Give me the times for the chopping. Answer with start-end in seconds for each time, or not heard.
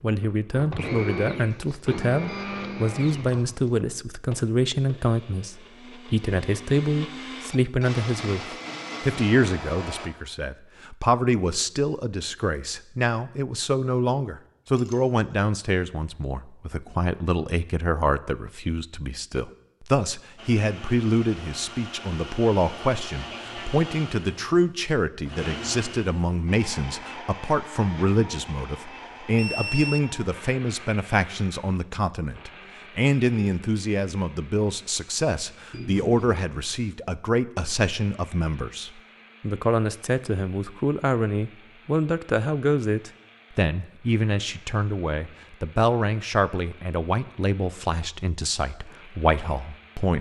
not heard.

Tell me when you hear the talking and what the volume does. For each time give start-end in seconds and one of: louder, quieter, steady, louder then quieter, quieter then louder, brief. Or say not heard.
0.0-50.1 steady.